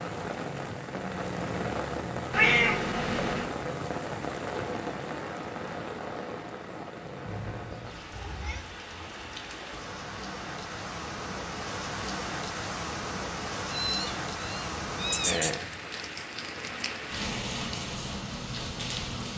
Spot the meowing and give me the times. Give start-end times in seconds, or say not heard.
2.3-3.5, 7.2-8.7, 13.7-15.5.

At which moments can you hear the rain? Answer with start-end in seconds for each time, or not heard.
0.0-19.3.